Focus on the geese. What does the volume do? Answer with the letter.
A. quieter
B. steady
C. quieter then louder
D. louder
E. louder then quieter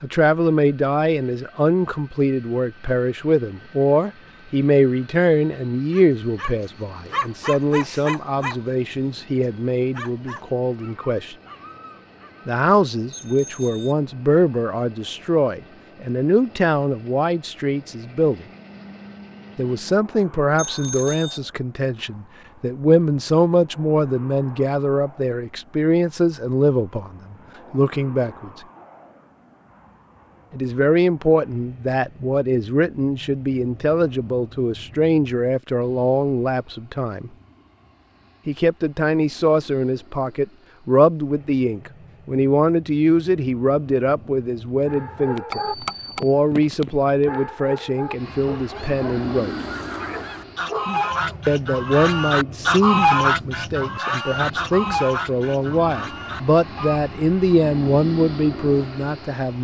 E.